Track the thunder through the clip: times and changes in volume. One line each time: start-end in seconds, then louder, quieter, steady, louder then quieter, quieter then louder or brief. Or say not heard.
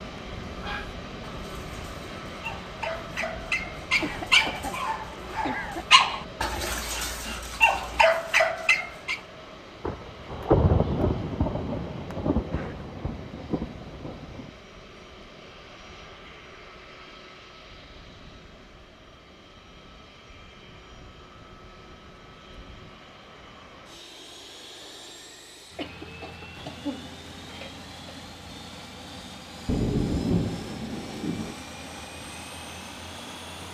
9.8-14.5 quieter
29.6-31.6 brief.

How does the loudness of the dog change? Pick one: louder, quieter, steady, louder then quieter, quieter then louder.
louder.